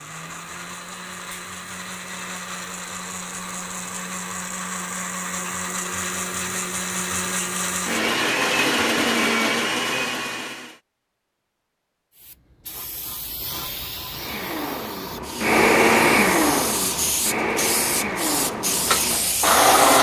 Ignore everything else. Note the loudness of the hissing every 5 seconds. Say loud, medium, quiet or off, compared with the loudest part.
off, off, medium, loud.